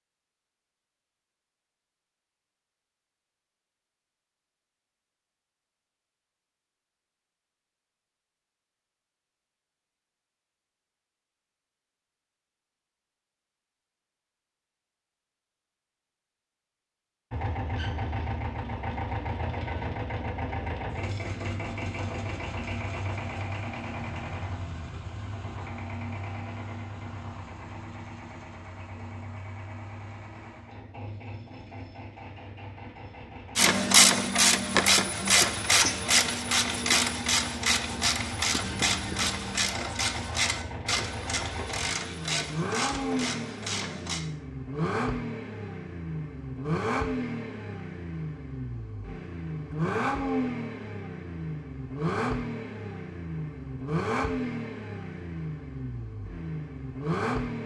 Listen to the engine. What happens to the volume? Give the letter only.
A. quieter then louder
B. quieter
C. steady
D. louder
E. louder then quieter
A.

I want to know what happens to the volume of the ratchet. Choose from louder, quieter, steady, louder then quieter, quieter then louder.
quieter.